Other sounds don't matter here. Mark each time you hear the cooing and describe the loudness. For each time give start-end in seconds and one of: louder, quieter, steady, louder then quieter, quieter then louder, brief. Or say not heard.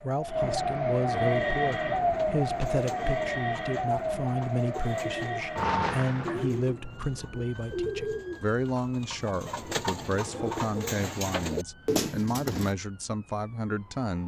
1.4-12.8 louder.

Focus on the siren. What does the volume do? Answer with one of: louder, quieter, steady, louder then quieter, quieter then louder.
quieter.